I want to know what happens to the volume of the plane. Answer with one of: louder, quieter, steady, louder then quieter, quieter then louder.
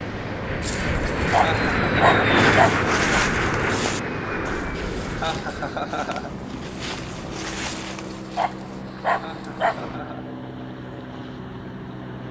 quieter.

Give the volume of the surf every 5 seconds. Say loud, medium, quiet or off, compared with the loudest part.
loud, medium, medium.